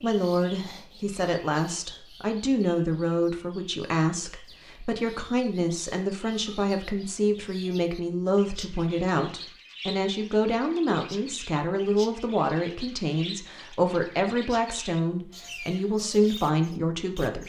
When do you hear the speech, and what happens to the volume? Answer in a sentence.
You can hear the speech from 0.0 to 17.4 s, at a steady volume.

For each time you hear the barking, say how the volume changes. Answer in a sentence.
The barking can't be heard in this clip.